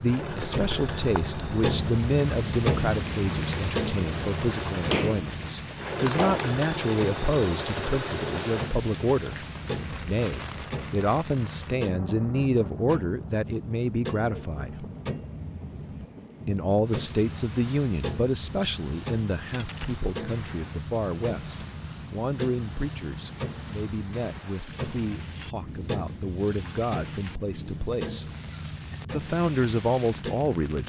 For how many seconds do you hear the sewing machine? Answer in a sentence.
The sewing machine can be heard for 9 seconds in total.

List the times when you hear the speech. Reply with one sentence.
You can hear the speech from 0.0 to 14.8 s, from 16.4 to 28.2 s and from 29.1 to 30.8 s.